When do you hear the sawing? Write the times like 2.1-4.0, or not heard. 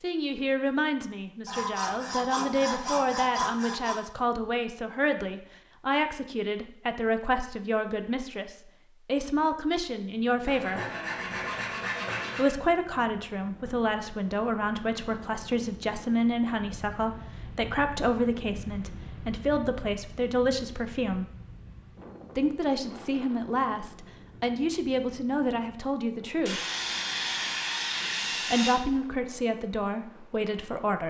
1.4-4.0, 10.4-12.6, 26.4-28.8.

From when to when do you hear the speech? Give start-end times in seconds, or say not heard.
0.0-10.8, 12.3-21.2, 22.4-26.6, 28.4-31.0.